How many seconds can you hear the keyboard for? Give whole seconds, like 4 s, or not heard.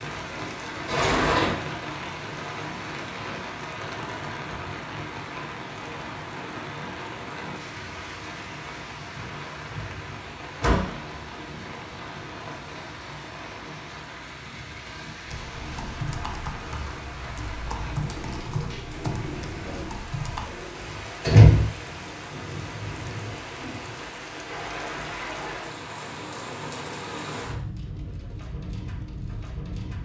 5 s.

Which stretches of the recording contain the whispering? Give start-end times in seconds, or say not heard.
not heard.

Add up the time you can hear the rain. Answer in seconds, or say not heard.
30 s.